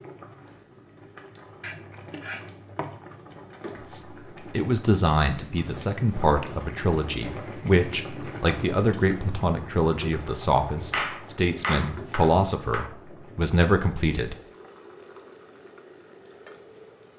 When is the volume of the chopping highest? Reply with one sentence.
The loudest moment of the chopping is at 11 seconds.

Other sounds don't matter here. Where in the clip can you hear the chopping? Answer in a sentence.
You can hear the chopping from 1.6 to 3.0 s and from 10.9 to 12.9 s.